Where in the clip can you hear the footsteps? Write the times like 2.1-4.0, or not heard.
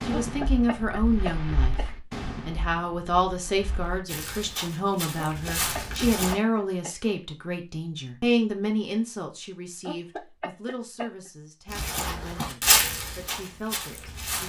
4.1-6.3, 11.7-14.4.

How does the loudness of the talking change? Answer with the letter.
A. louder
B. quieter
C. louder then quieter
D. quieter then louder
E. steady
B.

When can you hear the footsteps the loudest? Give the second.
13 s.